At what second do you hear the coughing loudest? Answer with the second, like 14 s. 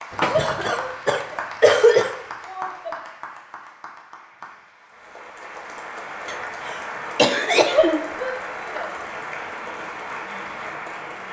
2 s.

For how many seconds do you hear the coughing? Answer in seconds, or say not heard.
4 s.